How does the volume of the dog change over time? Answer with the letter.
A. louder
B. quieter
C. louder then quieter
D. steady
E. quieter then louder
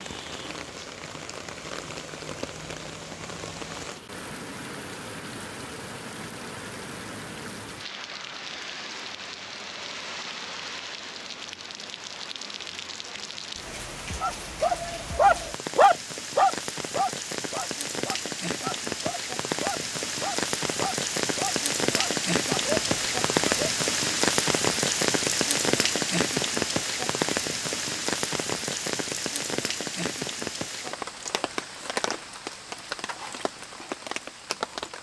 B.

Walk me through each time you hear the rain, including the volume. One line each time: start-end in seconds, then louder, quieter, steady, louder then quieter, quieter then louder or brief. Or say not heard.
0.0-34.9 louder then quieter.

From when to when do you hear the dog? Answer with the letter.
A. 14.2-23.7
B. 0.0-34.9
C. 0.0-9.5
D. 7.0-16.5
A.